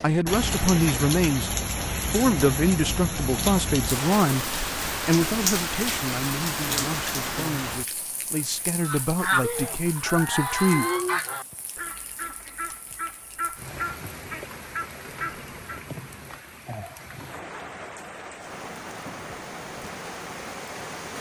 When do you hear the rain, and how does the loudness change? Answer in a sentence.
You can hear the rain from 0.0 to 21.1 s, getting quieter then louder.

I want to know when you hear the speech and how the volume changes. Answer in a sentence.
You can hear the speech from 0.0 to 10.8 s, getting quieter then louder.